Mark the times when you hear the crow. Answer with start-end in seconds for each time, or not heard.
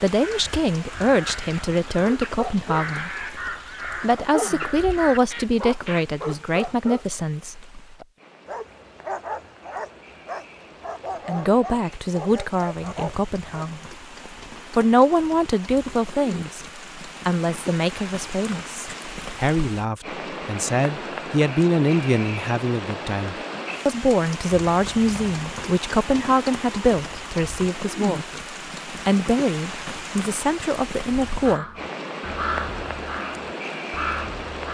0.1-6.0, 31.1-34.7.